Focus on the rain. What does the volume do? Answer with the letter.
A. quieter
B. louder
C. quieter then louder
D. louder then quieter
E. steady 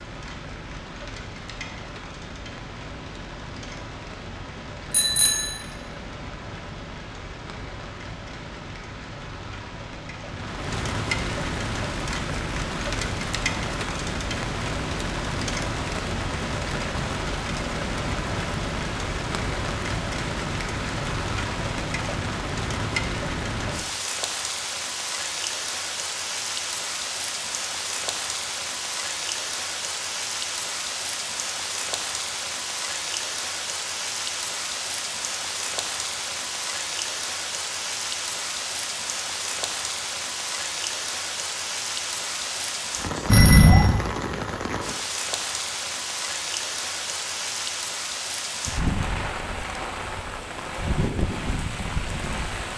B.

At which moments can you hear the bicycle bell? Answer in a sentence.
You can hear the bicycle bell from 4.9 to 5.6 s and from 43.2 to 43.9 s.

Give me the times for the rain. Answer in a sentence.
You can hear the rain from 0.0 to 52.7 s.